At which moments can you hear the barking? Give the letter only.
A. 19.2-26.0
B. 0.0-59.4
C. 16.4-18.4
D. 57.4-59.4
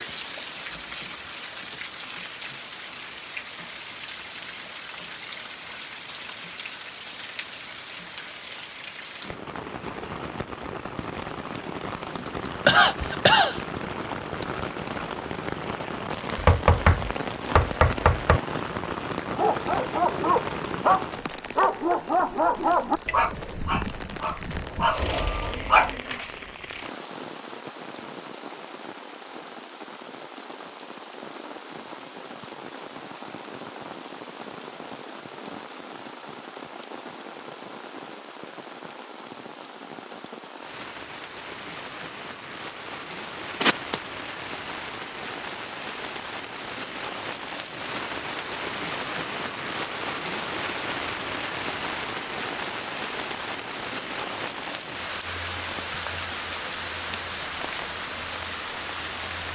A.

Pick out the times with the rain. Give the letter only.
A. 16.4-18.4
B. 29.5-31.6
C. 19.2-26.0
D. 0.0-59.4
D.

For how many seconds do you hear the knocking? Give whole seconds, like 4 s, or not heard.
2 s.